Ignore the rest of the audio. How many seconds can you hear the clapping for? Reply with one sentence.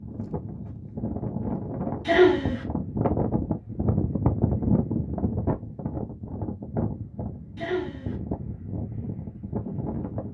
You can't hear the clapping here.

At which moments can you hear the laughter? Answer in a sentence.
You can hear the laughter from 2.0 to 2.6 s and from 7.5 to 8.2 s.